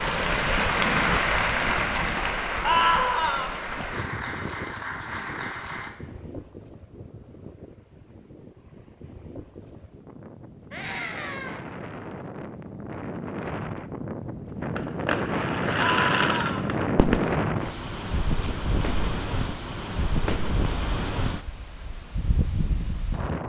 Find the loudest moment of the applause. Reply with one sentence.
The volume of the applause peaks at 1 second.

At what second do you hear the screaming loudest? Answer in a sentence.
The volume of the screaming peaks at 3 seconds.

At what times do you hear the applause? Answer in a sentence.
You can hear the applause from 0.0 to 5.9 s.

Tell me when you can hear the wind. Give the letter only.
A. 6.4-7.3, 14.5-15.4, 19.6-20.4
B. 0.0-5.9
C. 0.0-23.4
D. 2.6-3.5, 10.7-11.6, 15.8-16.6
C.